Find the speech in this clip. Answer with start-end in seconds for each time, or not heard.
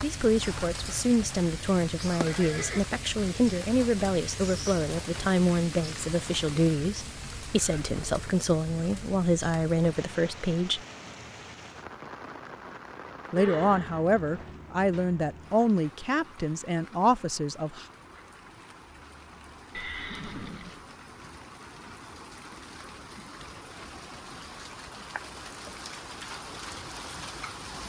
0.0-10.8, 13.3-17.9.